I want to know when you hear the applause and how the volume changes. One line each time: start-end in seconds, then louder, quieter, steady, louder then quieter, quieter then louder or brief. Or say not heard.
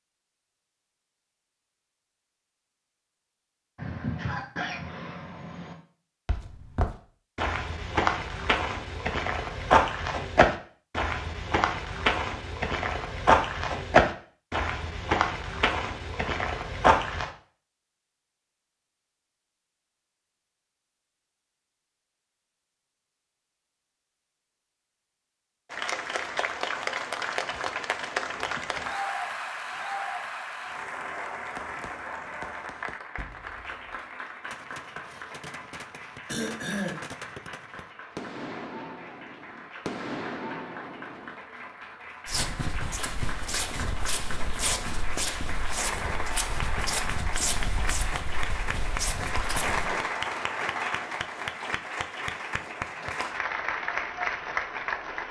25.7-55.2 quieter then louder.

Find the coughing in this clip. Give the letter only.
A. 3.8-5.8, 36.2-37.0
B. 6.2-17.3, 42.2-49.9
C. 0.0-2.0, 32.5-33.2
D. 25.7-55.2
A.